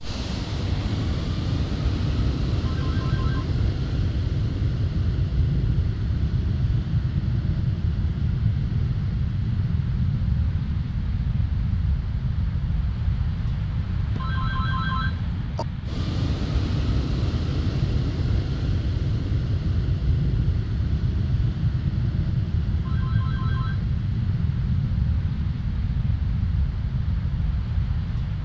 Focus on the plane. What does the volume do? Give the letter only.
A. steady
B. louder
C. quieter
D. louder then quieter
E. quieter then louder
A.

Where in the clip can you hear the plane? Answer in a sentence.
You can hear the plane from 0.0 to 28.4 s.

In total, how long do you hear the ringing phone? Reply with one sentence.
You can hear the ringing phone for 3 seconds altogether.